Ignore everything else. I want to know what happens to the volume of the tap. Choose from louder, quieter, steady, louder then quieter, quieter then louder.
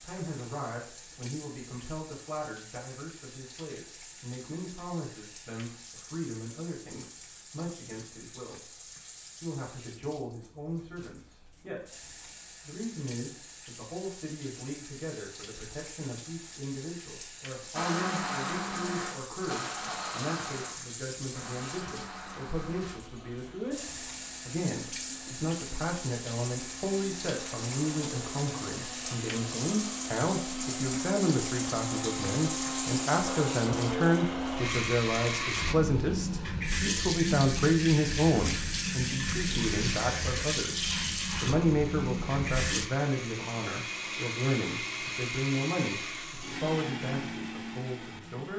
louder.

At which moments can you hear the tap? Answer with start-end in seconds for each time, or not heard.
0.0-42.9.